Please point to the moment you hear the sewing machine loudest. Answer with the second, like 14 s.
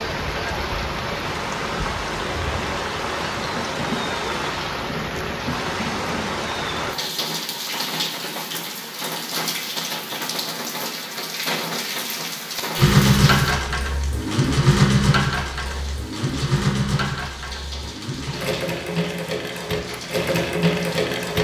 13 s.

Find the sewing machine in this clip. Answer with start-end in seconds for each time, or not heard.
12.8-21.3.